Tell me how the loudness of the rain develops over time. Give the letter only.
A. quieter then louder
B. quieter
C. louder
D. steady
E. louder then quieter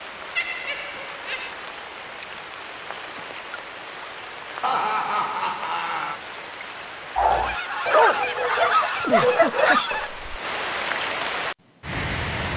C.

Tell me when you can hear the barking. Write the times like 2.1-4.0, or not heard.
7.2-10.3.